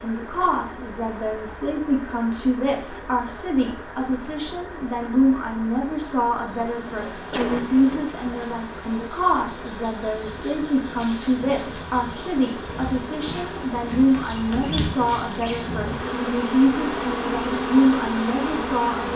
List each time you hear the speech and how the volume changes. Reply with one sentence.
You can hear the speech from 0.0 to 19.1 s, at a steady volume.